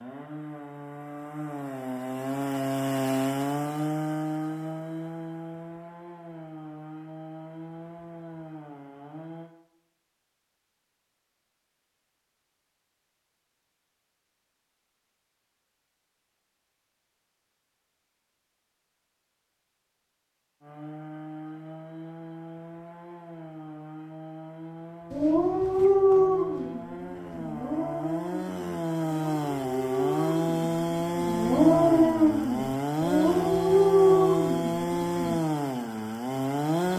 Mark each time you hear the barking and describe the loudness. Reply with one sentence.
The barking can be heard from 25.1 to 35.4 s, getting quieter then louder.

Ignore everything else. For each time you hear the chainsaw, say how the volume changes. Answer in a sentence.
You can hear the chainsaw from 0.0 to 9.5 s, getting louder then quieter; and from 20.6 to 36.9 s, getting louder.